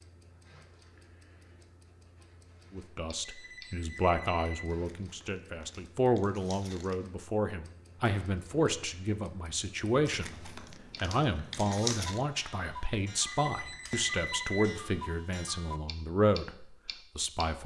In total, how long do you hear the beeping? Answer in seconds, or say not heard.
3 s.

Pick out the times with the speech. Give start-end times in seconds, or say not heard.
2.7-17.6.